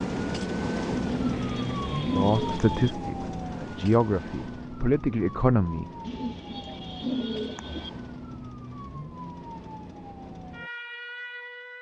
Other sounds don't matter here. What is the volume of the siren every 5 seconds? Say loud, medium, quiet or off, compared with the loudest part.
loud, medium, medium.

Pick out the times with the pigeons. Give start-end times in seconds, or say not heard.
1.1-3.0, 6.0-7.9.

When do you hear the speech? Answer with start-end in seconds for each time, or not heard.
2.0-5.8.